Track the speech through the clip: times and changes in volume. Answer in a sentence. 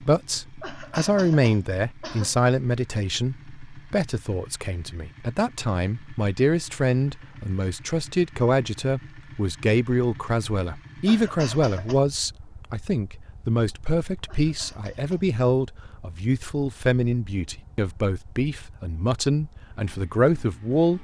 You can hear the speech from 0.0 to 20.9 s, at a steady volume.